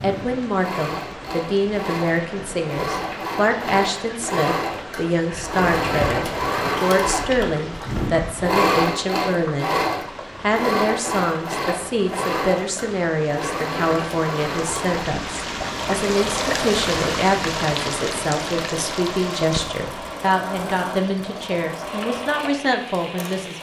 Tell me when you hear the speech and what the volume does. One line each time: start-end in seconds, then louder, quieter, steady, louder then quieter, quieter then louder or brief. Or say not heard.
0.0-9.8 steady
10.4-23.5 steady.